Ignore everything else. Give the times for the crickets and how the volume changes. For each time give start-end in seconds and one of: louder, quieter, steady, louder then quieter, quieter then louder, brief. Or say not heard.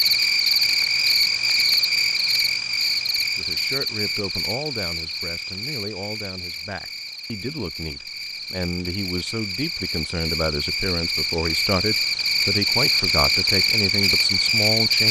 0.0-15.0 quieter then louder.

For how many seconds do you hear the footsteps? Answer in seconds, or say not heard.
not heard.